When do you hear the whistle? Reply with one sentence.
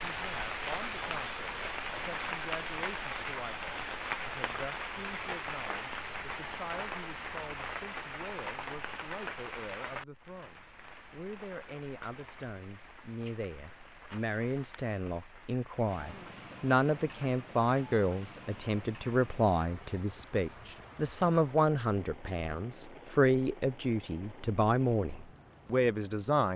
The whistle can't be heard in this clip.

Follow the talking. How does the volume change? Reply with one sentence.
The loudness of the talking goes up.